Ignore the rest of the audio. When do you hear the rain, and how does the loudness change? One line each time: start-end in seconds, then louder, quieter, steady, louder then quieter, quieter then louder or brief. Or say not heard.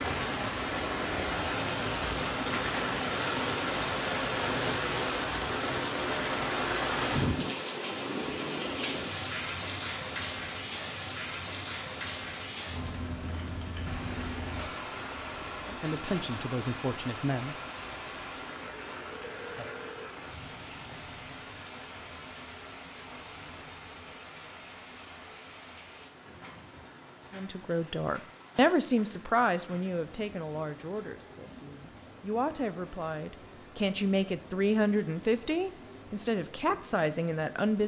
0.0-37.8 quieter.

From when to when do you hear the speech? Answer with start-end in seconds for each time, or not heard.
15.7-17.6, 27.3-37.8.